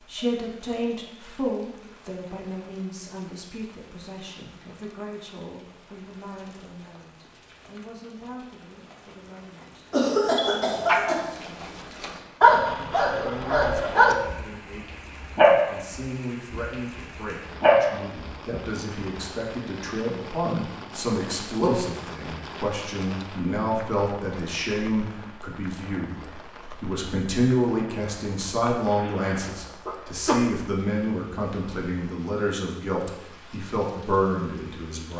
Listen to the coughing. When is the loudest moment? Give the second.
10 s.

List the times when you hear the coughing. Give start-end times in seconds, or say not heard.
9.9-11.3, 28.6-30.4.